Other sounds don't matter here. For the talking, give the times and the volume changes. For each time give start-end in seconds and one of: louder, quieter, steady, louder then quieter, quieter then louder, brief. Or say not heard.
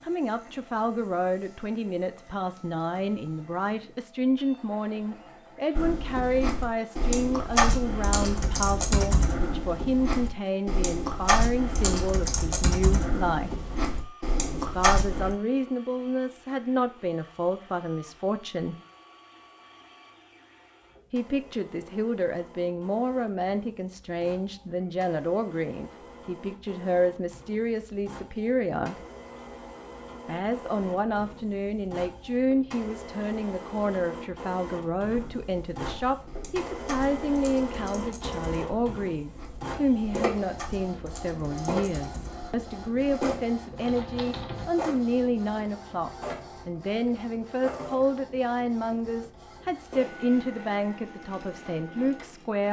0.0-13.5 steady
14.6-18.8 steady
21.1-28.9 steady
30.2-52.6 steady.